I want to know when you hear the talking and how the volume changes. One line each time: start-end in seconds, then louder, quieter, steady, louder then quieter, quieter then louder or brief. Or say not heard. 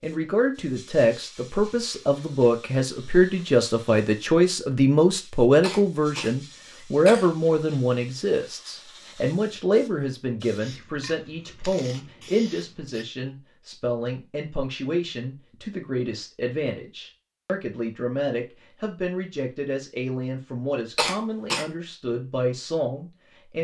0.0-23.5 quieter.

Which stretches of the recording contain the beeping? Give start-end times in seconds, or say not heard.
not heard.